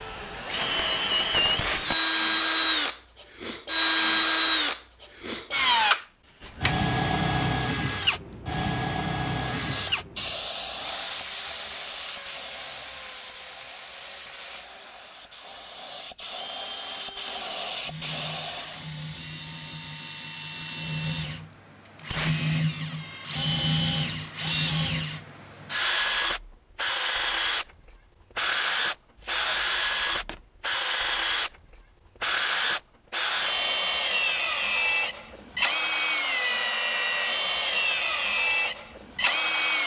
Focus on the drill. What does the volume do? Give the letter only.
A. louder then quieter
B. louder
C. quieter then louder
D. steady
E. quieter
C.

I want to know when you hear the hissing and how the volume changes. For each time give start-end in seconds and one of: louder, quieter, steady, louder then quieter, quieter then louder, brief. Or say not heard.
9.3-18.9 quieter then louder.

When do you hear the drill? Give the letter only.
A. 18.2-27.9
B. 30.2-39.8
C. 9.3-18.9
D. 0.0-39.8
D.